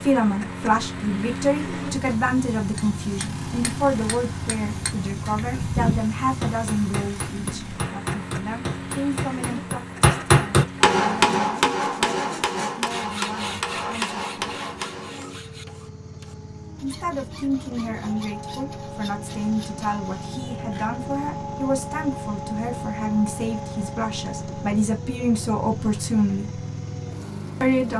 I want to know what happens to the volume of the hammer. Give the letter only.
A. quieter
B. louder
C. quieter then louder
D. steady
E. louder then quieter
E.